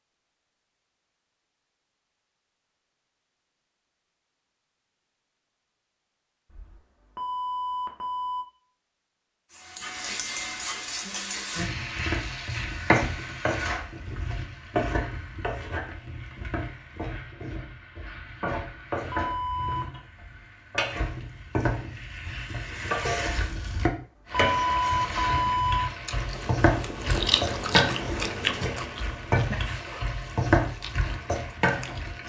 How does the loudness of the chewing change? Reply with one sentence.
The volume of the chewing goes down.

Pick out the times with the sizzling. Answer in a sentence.
The sizzling can be heard from 9.5 to 32.2 s.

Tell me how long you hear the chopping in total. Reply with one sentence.
You can't hear the chopping here.